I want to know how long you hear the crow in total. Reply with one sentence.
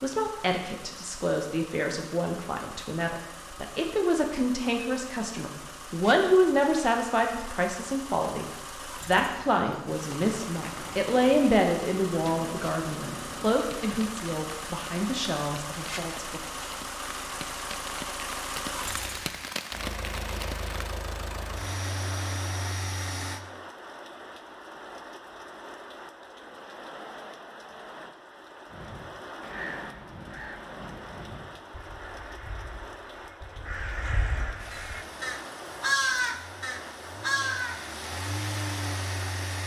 You can hear the crow for 9 seconds altogether.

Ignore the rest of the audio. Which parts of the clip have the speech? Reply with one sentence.
You can hear the speech from 0.0 to 16.4 s.